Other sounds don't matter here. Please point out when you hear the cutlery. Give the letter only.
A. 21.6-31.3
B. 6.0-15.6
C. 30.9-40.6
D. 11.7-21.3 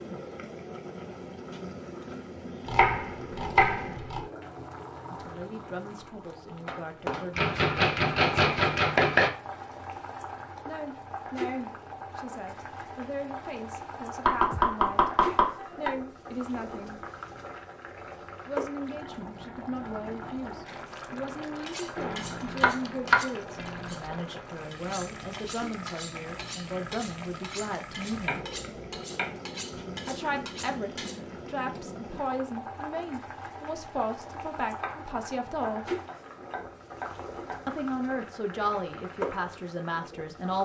A.